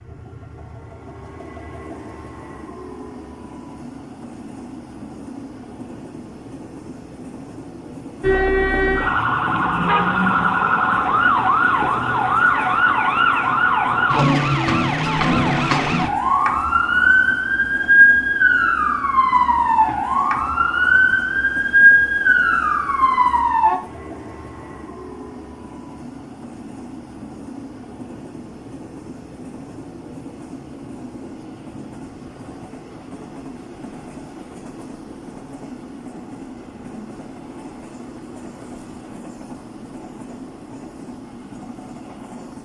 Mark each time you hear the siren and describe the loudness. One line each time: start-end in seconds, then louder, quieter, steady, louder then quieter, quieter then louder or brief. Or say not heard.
8.2-23.8 steady.